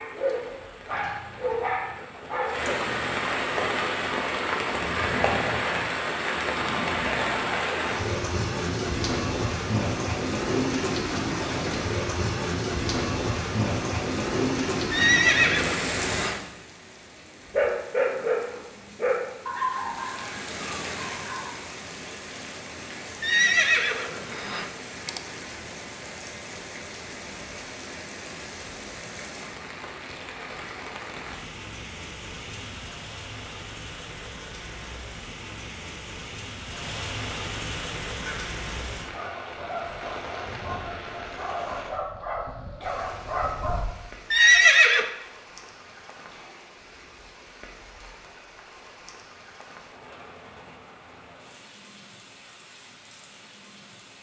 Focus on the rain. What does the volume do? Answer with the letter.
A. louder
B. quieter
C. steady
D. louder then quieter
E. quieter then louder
B.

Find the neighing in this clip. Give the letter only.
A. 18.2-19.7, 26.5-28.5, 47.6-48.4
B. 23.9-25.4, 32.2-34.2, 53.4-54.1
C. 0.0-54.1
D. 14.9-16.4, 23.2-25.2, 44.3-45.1
D.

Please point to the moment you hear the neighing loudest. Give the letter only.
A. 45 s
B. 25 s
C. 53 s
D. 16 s
A.